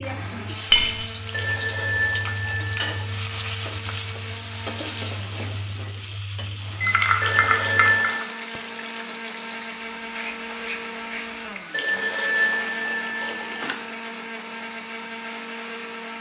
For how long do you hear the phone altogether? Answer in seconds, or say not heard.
5 s.